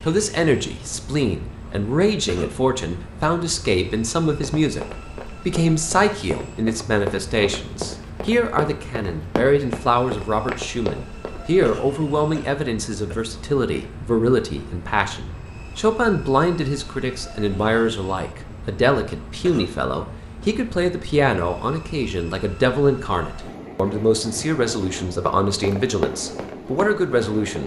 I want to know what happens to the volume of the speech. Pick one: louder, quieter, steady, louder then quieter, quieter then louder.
steady.